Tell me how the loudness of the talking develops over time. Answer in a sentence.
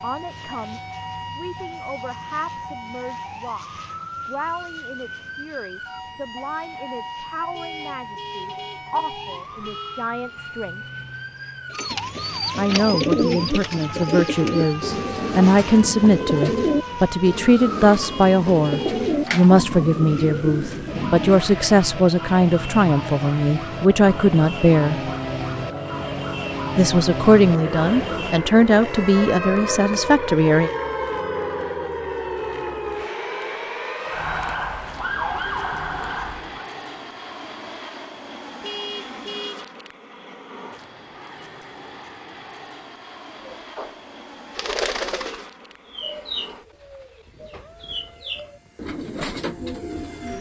The loudness of the talking goes up.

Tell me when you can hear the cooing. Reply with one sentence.
The cooing can be heard from 11.7 to 21.4 s and from 43.5 to 50.3 s.